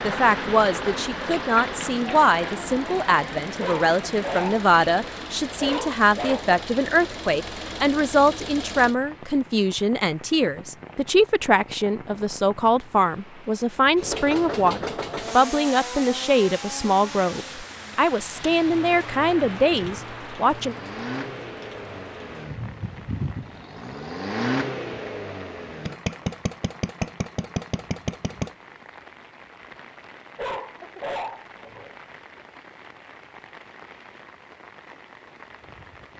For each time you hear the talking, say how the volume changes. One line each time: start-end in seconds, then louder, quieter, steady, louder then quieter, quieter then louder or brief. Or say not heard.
0.0-20.8 steady.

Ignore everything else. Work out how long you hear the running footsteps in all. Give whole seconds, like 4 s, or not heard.
not heard.